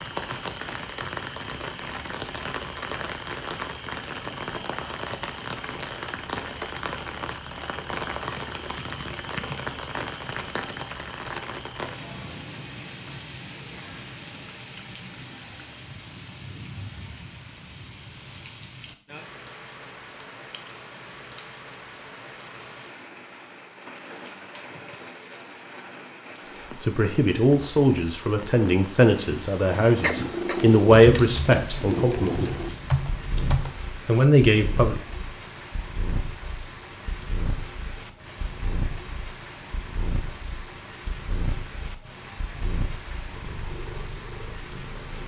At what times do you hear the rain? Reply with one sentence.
The rain can be heard from 0.0 to 45.2 s.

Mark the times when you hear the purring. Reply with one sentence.
The purring can be heard from 29.1 to 45.2 s.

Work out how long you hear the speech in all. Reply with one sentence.
You can hear the speech for 7 seconds altogether.